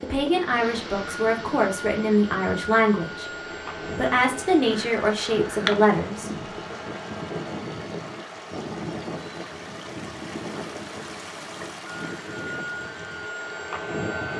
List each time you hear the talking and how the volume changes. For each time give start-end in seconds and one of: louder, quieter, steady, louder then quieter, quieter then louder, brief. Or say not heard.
0.0-6.8 steady.